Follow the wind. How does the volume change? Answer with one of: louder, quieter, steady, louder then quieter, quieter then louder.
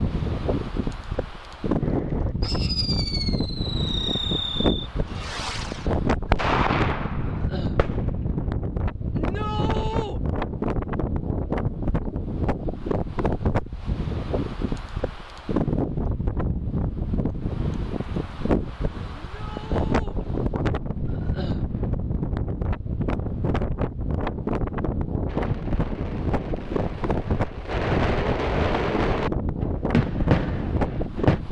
steady.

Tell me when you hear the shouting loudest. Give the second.
10 s.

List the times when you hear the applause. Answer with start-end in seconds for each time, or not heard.
not heard.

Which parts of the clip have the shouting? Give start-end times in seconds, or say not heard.
9.1-10.2, 19.1-20.2.